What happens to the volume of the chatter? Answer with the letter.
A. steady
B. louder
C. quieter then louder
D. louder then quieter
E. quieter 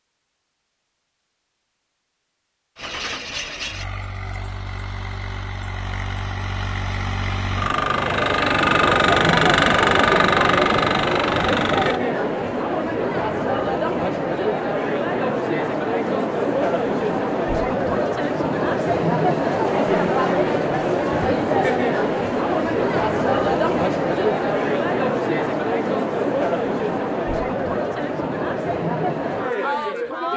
A.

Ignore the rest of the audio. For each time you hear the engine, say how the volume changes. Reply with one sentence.
You can hear the engine from 2.8 to 12.0 s, getting louder.